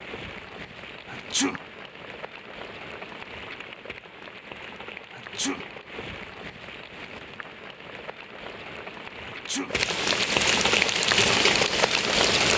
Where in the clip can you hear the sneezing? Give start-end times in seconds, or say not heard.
1.1-1.6, 5.1-5.7, 9.2-9.8.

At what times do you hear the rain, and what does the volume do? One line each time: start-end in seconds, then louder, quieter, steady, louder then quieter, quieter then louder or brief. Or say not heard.
0.0-12.5 louder.